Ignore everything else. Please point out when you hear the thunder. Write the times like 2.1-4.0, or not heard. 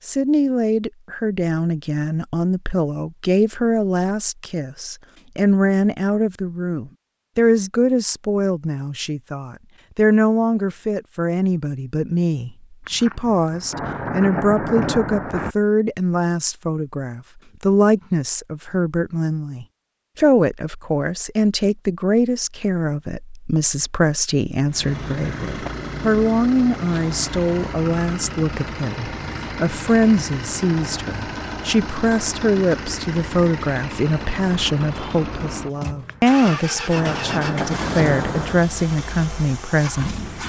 12.8-15.6, 36.0-38.6.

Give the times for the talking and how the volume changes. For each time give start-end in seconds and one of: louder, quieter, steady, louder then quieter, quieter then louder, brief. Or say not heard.
0.1-40.2 steady.